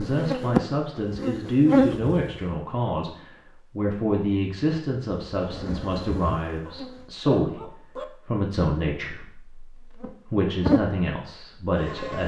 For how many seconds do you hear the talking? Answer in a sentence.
The talking can be heard for 12 seconds in total.